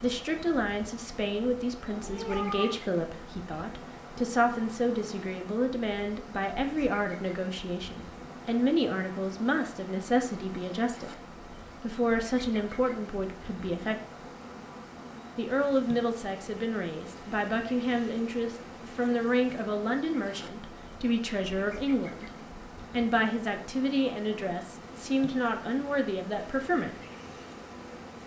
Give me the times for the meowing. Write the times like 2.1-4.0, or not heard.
1.9-2.9.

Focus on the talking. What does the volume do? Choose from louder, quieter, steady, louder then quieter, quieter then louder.
steady.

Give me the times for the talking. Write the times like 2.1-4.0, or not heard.
0.0-14.0, 15.3-26.9.